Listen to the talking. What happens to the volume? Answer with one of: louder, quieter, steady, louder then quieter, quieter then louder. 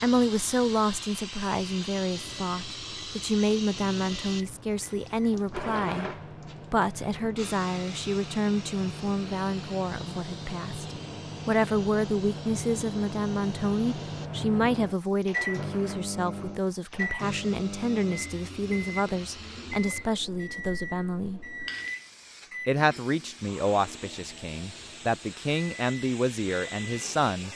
steady.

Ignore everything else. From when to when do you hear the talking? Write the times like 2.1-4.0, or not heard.
0.0-6.1, 6.7-21.4, 22.6-27.5.